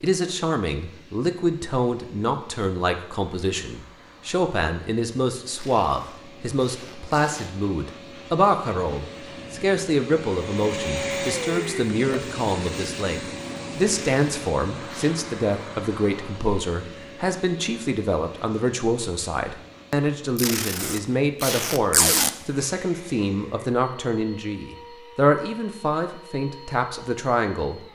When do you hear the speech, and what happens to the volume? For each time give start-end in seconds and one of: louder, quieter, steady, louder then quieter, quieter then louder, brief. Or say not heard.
0.0-27.8 steady.